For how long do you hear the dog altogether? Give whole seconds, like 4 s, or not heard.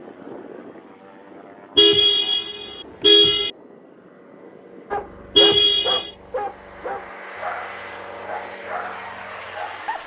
5 s.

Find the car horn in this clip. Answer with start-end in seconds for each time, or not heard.
1.8-3.5, 5.3-6.1.